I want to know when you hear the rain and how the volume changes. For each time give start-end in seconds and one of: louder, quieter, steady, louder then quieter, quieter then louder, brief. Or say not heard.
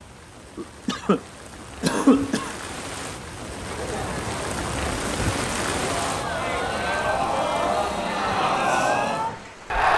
0.0-9.9 louder then quieter.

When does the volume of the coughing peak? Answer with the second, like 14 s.
2 s.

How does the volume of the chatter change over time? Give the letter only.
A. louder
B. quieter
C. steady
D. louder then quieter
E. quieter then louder
A.